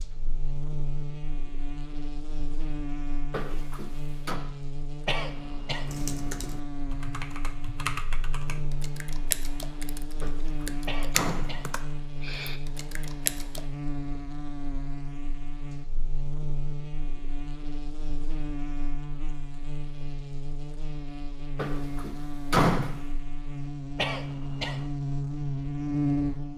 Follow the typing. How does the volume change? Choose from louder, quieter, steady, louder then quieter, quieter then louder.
louder then quieter.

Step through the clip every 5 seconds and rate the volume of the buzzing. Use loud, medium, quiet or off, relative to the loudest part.
medium, medium, medium, medium, medium, loud.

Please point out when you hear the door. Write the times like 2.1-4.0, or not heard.
3.3-4.4, 10.2-11.6, 21.6-22.9.